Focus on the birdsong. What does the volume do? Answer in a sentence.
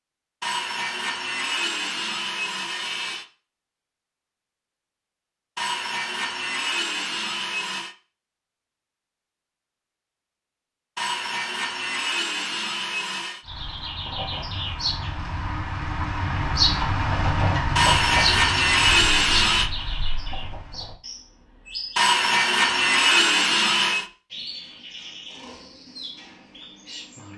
The loudness of the birdsong goes up, then down.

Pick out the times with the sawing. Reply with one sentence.
You can hear the sawing from 0.4 to 3.2 s, from 5.5 to 8.0 s, from 10.9 to 13.4 s, from 17.8 to 19.7 s and from 21.9 to 24.1 s.